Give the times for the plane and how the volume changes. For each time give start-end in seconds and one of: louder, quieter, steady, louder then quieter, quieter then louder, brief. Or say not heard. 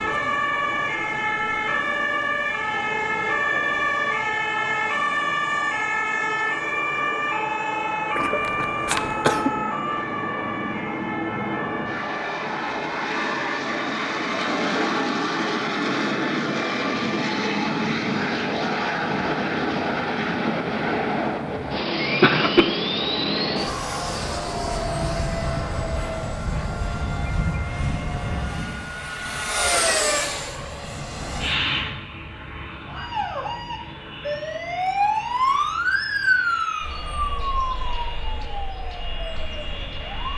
0.2-40.3 louder then quieter.